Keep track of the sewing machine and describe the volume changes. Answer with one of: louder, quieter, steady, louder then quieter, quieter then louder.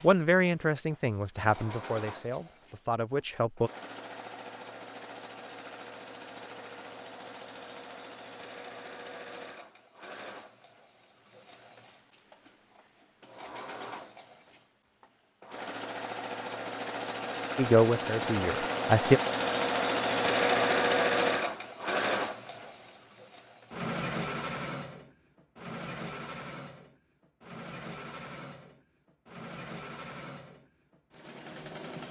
louder then quieter.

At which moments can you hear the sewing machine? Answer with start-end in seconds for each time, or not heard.
0.0-32.0.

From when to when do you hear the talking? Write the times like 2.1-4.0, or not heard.
0.0-3.7, 17.6-19.2.